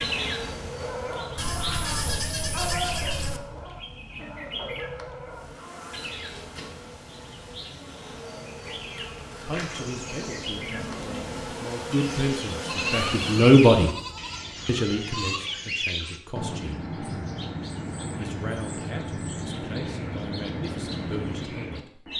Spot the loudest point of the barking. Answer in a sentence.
The loudest moment of the barking is at 3 seconds.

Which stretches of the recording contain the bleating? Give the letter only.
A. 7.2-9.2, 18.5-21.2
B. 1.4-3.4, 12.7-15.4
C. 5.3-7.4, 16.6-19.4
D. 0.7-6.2
B.